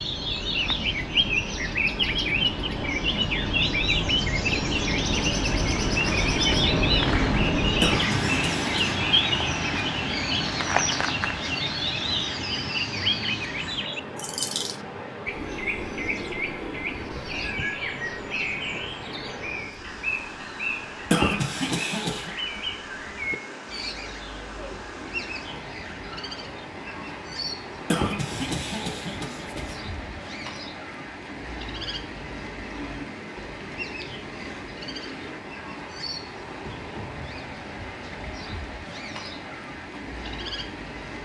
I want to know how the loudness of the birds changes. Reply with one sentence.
The volume of the birds goes down.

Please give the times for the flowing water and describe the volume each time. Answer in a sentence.
You can hear the flowing water from 0.0 to 41.1 s, getting quieter.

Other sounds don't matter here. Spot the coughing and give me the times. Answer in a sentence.
You can hear the coughing from 7.8 to 9.0 s, from 21.1 to 22.4 s and from 27.9 to 29.8 s.